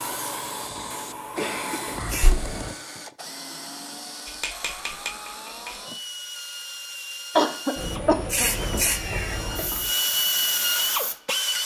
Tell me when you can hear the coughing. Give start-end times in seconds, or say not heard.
0.6-1.9, 7.3-8.5.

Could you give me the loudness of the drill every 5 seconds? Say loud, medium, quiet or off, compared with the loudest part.
quiet, medium, loud.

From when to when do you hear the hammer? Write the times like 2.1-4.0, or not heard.
4.2-5.8.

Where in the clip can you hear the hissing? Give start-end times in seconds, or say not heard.
0.0-2.8, 7.8-11.6.